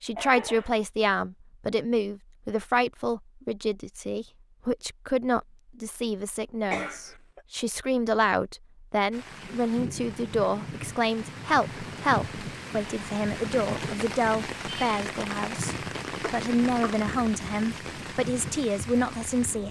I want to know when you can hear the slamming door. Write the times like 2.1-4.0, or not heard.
not heard.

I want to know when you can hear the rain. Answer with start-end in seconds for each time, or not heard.
9.1-19.6.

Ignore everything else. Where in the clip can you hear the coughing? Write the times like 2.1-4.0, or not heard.
0.1-0.8, 6.7-7.4, 16.2-17.0.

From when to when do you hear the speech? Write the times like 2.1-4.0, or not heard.
0.0-19.6.